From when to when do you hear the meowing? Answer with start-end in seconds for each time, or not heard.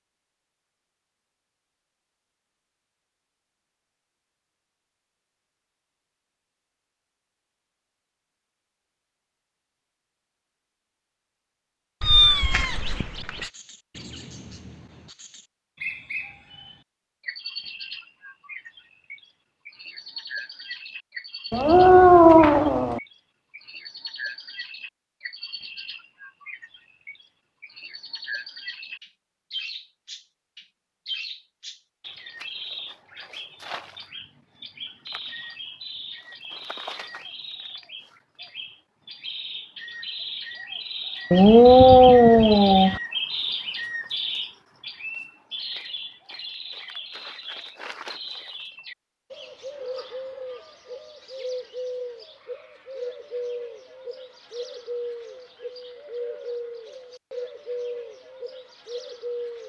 12.0-13.5, 21.5-23.0, 41.3-43.0.